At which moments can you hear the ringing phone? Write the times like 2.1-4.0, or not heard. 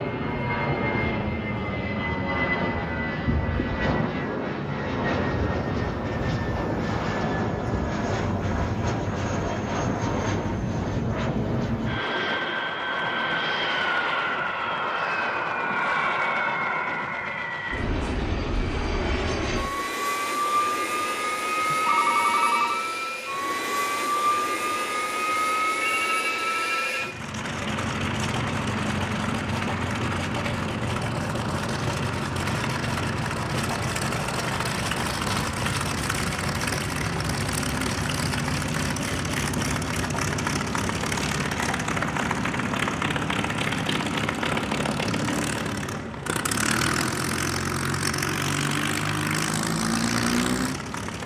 21.7-22.9, 25.8-27.1.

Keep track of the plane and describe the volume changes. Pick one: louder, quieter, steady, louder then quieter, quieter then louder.
steady.